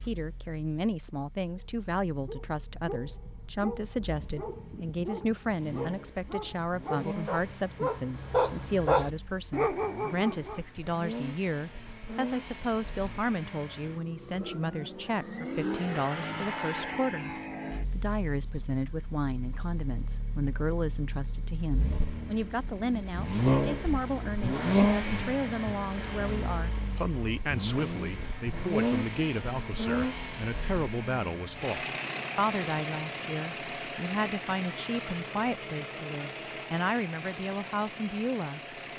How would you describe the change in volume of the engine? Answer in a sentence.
The loudness of the engine goes up, then down.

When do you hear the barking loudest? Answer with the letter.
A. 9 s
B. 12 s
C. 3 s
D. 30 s
A.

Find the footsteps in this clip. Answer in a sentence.
The footsteps can't be heard in this clip.